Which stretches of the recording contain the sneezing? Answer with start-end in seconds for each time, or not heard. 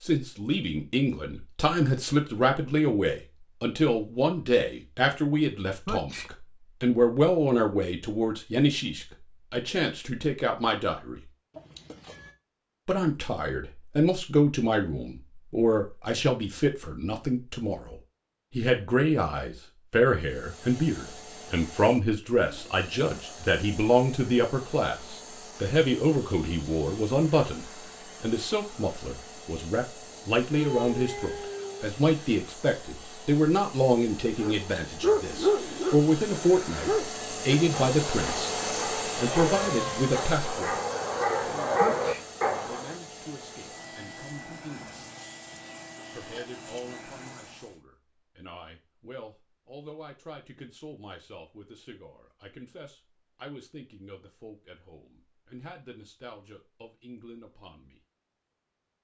5.8-6.3, 41.8-42.2.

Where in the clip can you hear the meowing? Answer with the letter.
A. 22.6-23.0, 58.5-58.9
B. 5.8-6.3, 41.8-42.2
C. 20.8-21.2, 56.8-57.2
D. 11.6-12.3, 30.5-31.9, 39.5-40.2
D.